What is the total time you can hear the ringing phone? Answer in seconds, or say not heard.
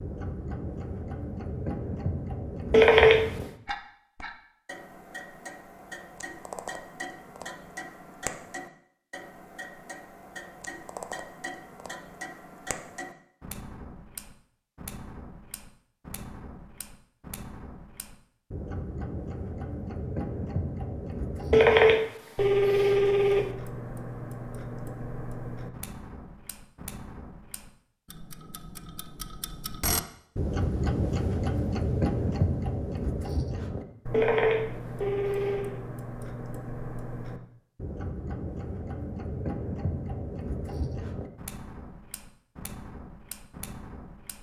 4 s.